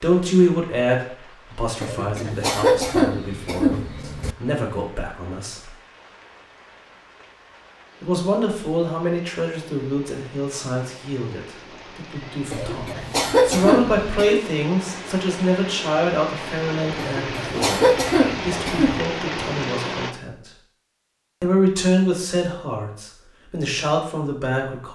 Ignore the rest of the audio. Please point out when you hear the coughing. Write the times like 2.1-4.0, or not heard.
1.8-4.3, 12.5-14.4, 16.9-19.1.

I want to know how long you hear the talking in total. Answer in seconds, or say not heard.
22 s.